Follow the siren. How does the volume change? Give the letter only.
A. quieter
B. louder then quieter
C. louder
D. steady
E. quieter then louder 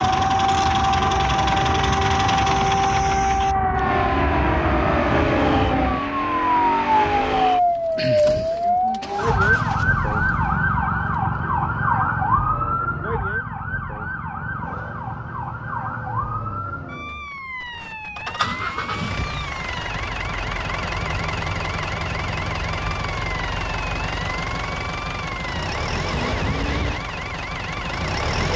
A.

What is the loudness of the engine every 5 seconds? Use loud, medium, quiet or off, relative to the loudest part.
loud, loud, quiet, medium, loud, loud.